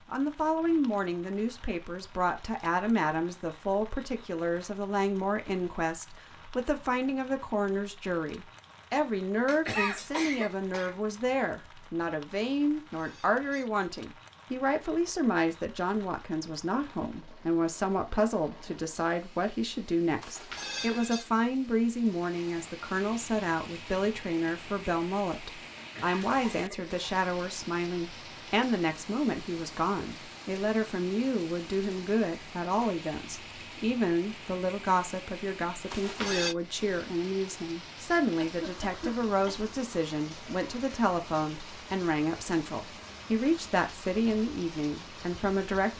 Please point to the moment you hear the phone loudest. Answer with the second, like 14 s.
36 s.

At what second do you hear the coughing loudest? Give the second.
10 s.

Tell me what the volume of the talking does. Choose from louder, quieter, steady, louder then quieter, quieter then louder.
steady.